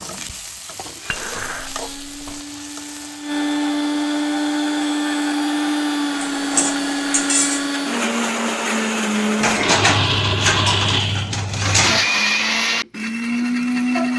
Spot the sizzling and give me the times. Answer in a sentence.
You can hear the sizzling from 0.0 to 3.4 s.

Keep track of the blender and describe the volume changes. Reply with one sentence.
The loudness of the blender goes up.